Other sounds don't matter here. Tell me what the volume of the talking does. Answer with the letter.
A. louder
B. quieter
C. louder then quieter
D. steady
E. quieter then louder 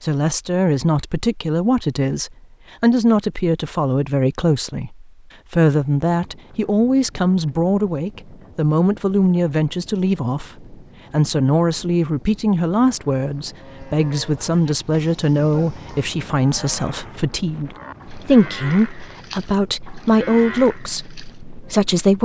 D.